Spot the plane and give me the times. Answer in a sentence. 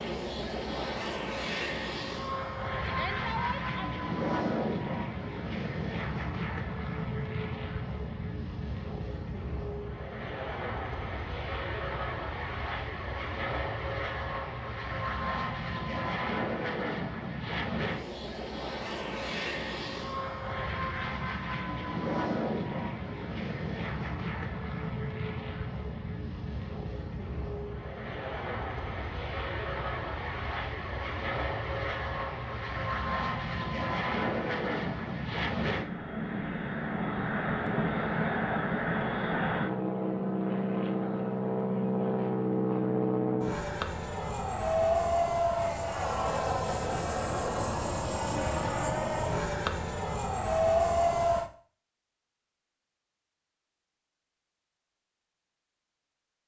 The plane can be heard from 0.0 to 51.5 s.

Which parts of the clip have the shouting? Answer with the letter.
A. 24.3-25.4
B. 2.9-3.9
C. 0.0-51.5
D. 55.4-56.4
B.